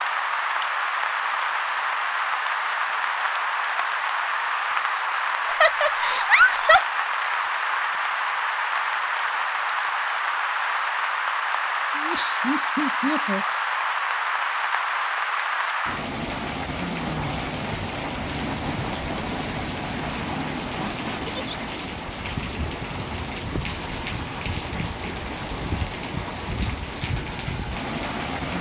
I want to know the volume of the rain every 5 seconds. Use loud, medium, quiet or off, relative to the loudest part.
loud, loud, loud, loud, medium, medium.